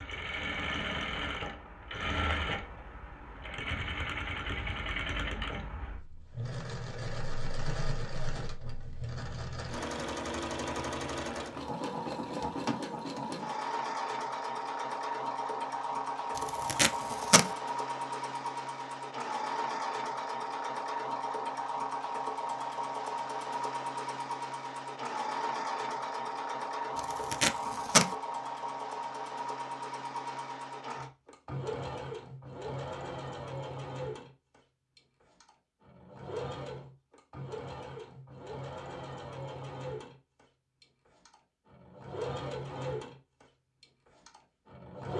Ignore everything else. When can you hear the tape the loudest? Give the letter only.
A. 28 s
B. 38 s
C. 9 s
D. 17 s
A.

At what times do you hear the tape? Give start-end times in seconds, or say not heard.
16.4-17.5, 26.9-28.1.